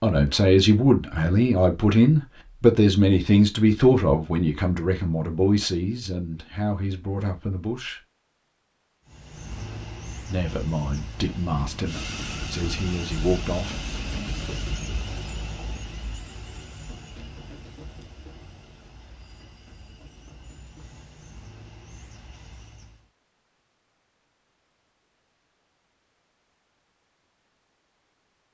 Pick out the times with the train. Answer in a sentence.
The train can be heard from 9.1 to 23.1 s.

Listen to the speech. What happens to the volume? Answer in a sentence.
The loudness of the speech goes down.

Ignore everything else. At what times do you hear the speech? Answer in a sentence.
You can hear the speech from 0.0 to 8.0 s and from 10.2 to 13.8 s.